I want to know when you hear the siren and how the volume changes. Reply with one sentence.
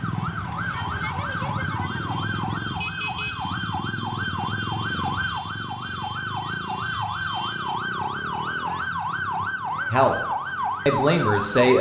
You can hear the siren from 0.0 to 11.7 s, at a steady volume.